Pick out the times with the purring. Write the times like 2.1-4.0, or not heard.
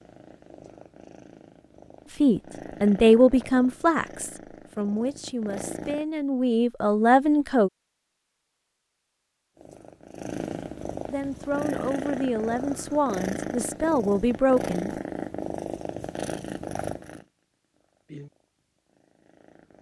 0.0-6.0, 9.6-19.7.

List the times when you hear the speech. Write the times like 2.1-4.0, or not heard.
2.2-7.7, 11.1-14.9.